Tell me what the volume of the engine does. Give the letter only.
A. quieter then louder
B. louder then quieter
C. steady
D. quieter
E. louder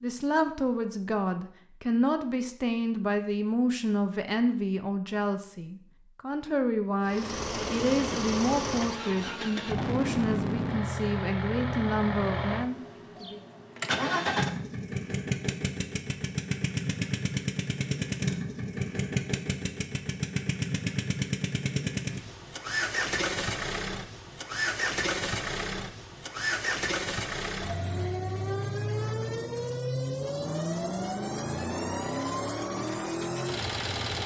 C.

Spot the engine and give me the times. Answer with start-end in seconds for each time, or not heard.
7.0-34.2.